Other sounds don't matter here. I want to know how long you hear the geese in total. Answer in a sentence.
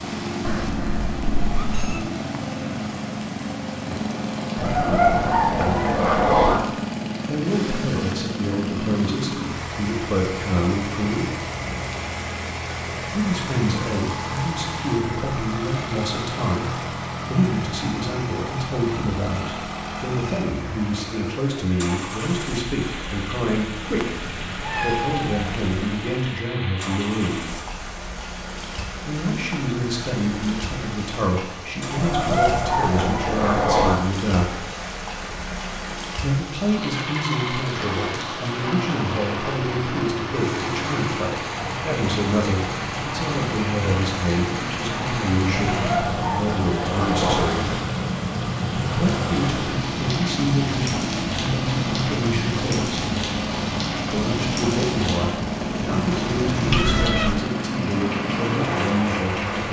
You can hear the geese for 6 seconds altogether.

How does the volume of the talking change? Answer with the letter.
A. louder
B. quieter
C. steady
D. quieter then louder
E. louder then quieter
C.